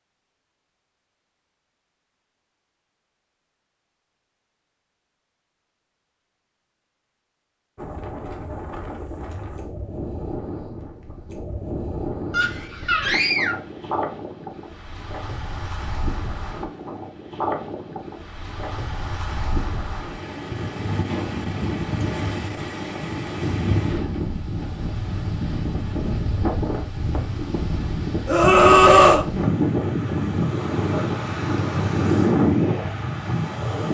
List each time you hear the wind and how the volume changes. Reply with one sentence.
The wind can be heard from 7.8 to 33.8 s, getting louder.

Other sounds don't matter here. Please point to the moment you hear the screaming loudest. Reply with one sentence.
The loudest moment of the screaming is at 29 seconds.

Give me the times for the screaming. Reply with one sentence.
You can hear the screaming from 12.3 to 13.6 s and from 28.2 to 29.2 s.